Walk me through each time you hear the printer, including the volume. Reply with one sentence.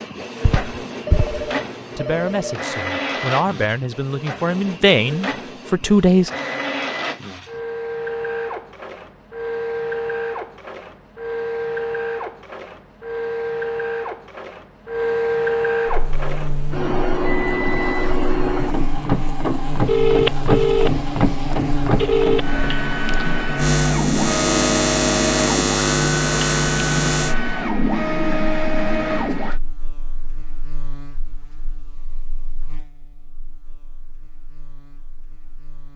You can hear the printer from 0.0 to 29.6 s, getting louder.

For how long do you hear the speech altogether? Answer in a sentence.
You can hear the speech for 4 seconds altogether.